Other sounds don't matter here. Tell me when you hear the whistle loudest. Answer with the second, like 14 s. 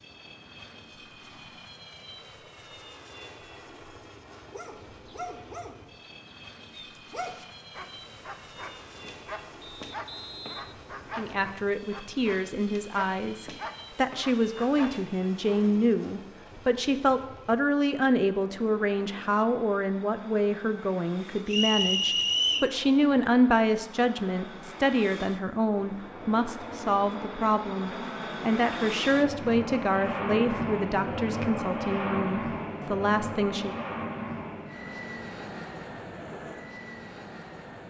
22 s.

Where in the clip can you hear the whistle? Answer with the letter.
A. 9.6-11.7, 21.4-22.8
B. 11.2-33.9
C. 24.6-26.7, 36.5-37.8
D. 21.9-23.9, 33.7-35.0
A.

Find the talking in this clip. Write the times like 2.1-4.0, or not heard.
11.2-33.9.